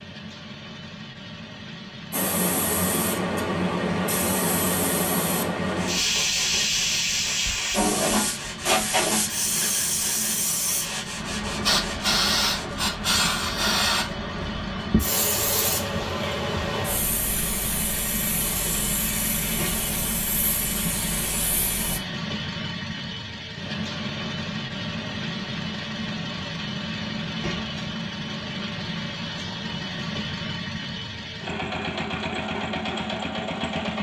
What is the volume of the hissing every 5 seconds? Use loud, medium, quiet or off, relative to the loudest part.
loud, loud, loud, medium, medium, off, off.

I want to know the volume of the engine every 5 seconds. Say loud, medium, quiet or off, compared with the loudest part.
medium, medium, medium, loud, loud, loud, loud.